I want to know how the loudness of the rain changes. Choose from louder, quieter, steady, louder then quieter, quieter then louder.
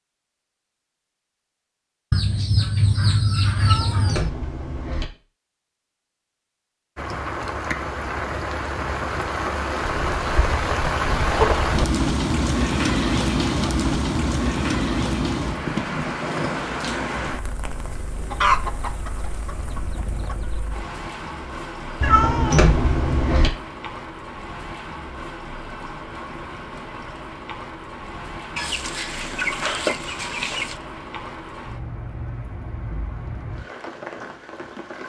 quieter.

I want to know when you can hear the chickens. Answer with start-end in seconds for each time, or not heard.
2.1-4.3, 9.9-11.8, 18.3-20.6, 28.6-30.8.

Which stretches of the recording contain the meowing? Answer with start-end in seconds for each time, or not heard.
3.5-5.0, 22.0-23.5.